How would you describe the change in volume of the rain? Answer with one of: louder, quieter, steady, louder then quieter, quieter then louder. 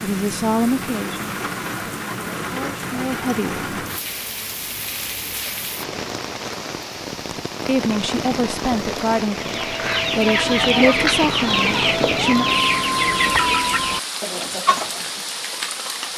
steady.